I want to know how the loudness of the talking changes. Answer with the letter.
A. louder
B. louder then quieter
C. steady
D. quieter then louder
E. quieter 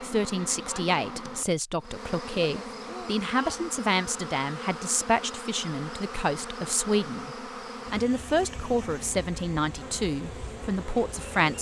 C.